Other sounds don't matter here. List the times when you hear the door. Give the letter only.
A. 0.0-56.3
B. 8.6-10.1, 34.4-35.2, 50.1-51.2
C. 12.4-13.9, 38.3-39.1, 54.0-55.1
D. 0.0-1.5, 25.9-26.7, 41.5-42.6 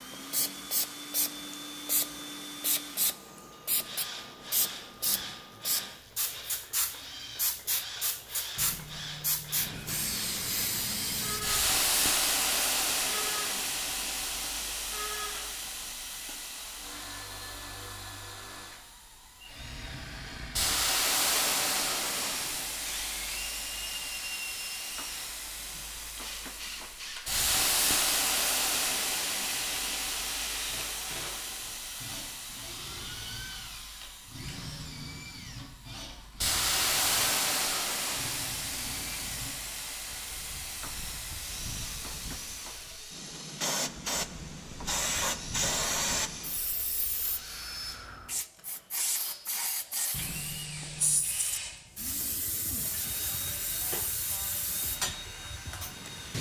B.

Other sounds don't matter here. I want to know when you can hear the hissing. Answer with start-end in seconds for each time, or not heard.
0.0-56.3.